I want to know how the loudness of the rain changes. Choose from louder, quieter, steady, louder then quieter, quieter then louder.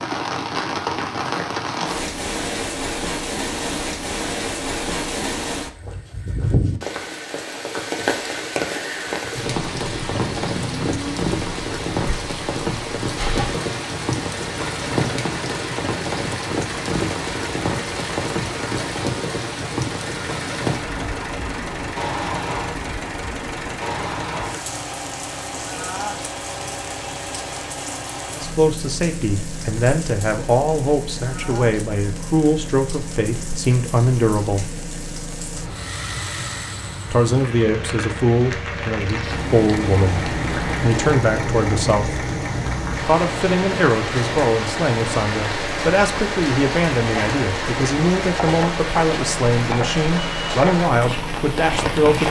quieter then louder.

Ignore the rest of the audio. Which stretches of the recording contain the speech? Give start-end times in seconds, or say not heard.
28.4-34.7, 37.1-42.2, 43.0-52.2.